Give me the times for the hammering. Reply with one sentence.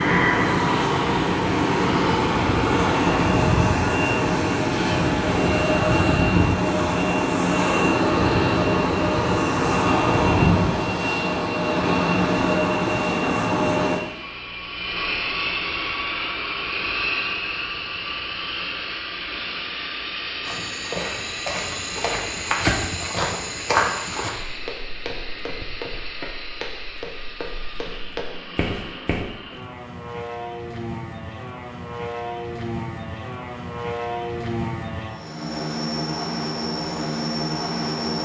You can't hear the hammering here.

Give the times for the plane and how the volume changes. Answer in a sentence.
The plane can be heard from 0.0 to 38.2 s, getting quieter then louder.